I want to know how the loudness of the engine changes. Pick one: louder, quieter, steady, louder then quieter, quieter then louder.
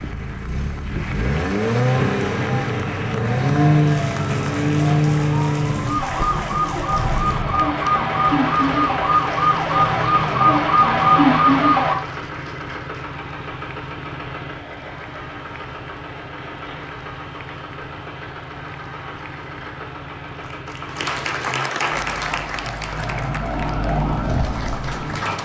quieter.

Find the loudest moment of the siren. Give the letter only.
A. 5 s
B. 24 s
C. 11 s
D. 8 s
C.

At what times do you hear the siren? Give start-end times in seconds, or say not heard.
2.0-11.9, 22.1-25.4.